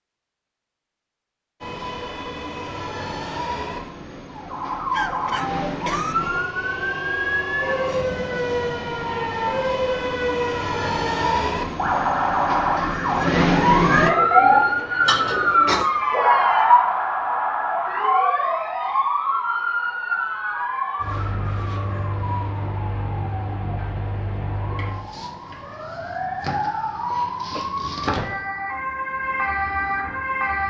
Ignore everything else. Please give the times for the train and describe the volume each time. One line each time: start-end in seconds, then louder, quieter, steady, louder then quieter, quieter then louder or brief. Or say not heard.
1.6-14.1 louder.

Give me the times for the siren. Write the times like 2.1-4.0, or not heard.
4.2-30.6.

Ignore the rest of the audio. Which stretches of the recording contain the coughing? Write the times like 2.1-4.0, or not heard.
4.9-6.2, 15.1-15.9, 27.2-27.8.